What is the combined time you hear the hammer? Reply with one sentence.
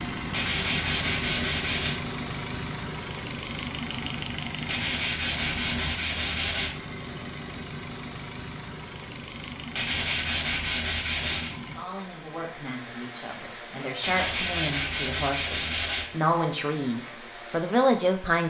The hammer can't be heard in this clip.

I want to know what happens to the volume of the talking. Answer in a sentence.
The loudness of the talking goes up.